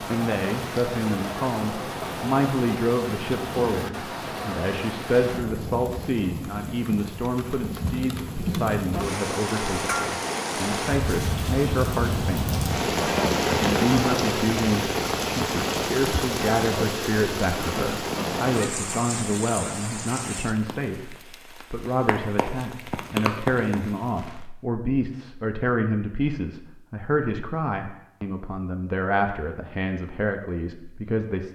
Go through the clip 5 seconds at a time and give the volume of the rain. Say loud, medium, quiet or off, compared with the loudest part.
medium, medium, loud, loud, medium, off, off.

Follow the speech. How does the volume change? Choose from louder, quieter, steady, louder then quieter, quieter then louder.
steady.